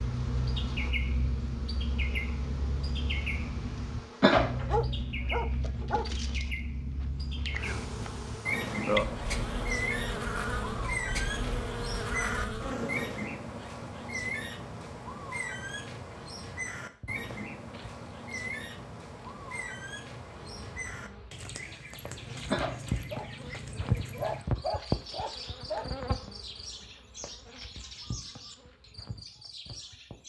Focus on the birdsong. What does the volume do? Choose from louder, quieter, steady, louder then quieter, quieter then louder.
quieter.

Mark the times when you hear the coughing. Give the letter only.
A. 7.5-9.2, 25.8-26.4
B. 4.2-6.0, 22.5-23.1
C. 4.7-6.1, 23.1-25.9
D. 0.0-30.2
B.